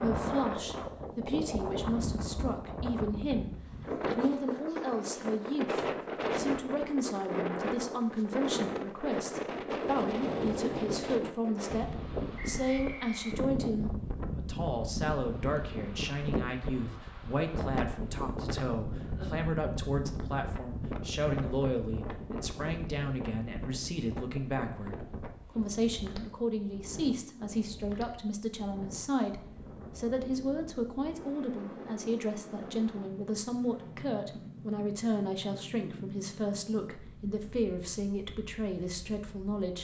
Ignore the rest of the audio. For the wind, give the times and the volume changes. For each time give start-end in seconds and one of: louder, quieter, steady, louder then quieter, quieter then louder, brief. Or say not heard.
0.0-39.8 quieter.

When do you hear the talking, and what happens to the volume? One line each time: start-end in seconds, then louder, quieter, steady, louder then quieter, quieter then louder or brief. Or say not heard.
0.0-39.8 steady.